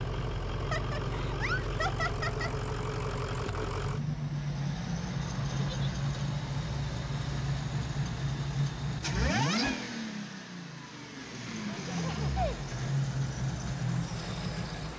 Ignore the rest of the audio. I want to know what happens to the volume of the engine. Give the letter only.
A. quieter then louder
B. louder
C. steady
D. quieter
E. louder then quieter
C.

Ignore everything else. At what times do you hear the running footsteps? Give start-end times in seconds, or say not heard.
not heard.